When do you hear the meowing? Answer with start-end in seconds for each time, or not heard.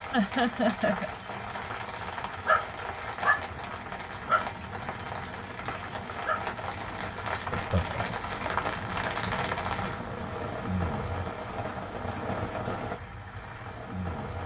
not heard.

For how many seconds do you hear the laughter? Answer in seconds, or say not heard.
2 s.